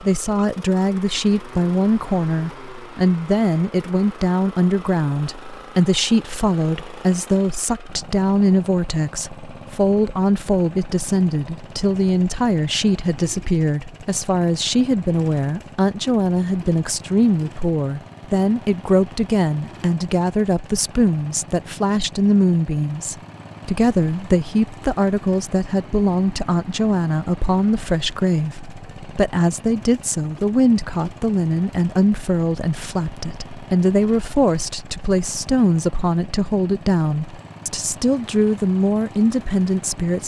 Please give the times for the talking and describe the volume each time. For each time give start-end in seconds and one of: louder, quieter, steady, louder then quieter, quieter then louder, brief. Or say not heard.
0.0-40.2 steady.